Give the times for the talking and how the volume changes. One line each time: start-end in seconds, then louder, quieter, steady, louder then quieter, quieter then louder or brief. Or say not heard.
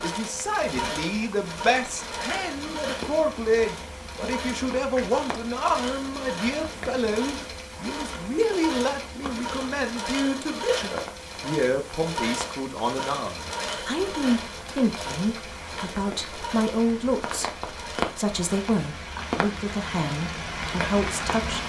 0.0-21.6 steady.